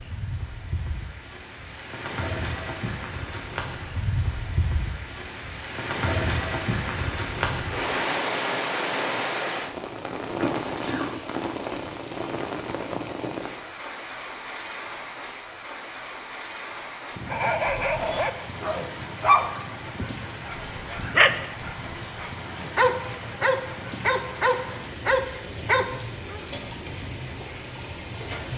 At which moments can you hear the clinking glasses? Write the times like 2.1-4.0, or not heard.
not heard.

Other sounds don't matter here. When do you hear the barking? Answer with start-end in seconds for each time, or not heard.
17.3-26.4.